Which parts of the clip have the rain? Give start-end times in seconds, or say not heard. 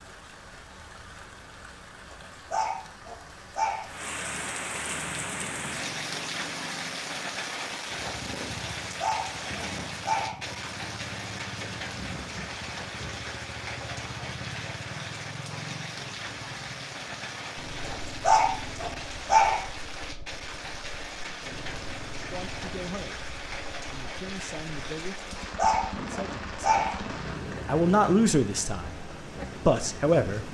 0.0-30.4.